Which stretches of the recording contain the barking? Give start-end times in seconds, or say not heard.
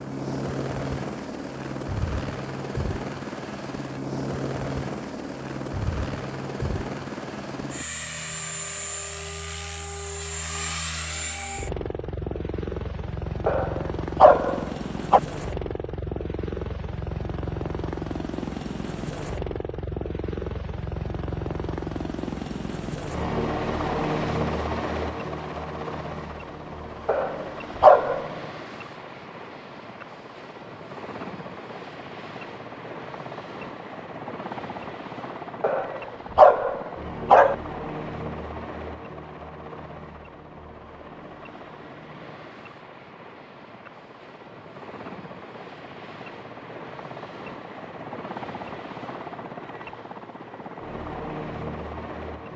13.4-15.2, 27.1-28.4, 35.6-37.5.